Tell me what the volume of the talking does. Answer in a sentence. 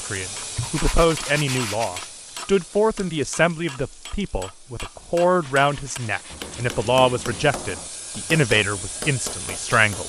The volume of the talking stays about the same.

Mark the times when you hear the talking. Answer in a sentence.
You can hear the talking from 0.1 to 10.0 s.